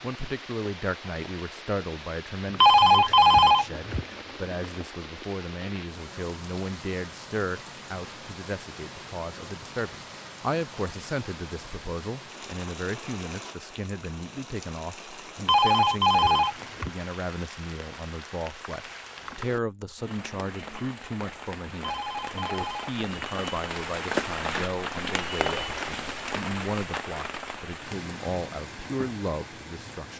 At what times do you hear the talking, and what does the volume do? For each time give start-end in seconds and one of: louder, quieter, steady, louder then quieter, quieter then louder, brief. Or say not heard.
0.0-30.1 steady.